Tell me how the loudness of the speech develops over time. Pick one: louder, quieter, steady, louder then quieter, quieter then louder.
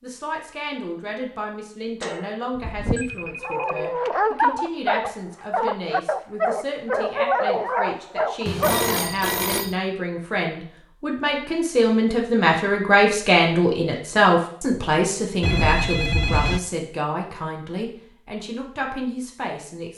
louder then quieter.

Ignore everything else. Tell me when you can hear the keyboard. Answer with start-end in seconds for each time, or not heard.
not heard.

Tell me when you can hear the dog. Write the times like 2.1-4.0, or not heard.
3.4-9.0.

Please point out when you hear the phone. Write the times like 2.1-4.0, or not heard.
2.0-3.9, 8.4-9.8, 15.4-16.6.